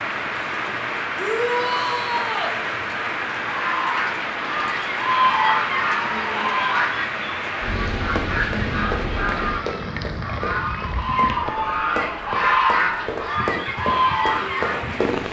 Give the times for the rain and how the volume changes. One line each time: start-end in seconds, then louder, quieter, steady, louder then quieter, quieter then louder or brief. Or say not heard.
0.0-15.2 quieter.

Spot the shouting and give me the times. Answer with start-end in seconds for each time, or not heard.
1.1-2.5.